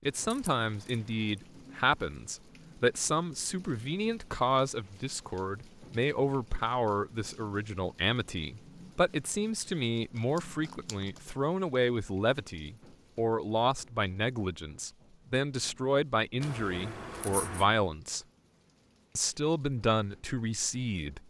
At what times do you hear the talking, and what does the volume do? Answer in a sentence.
You can hear the talking from 0.1 to 18.2 s, at a steady volume; and briefly from 19.1 to 21.2 s.